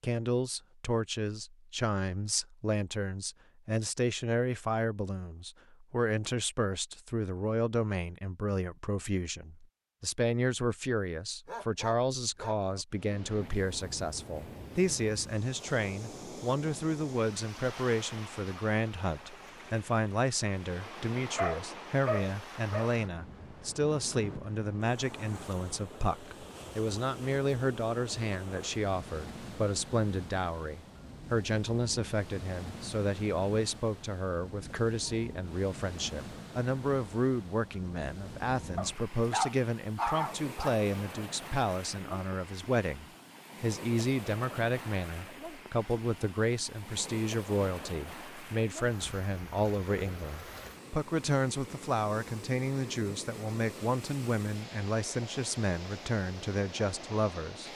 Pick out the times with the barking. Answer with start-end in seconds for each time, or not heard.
11.4-12.8, 21.4-22.9, 38.8-40.9.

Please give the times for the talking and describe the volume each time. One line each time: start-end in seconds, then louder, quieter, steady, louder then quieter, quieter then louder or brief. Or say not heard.
0.0-57.7 steady.